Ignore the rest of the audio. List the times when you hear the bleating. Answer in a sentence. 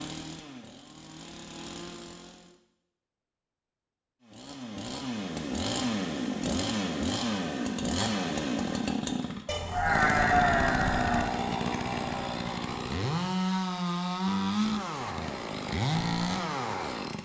The bleating can be heard from 9.4 to 11.3 s.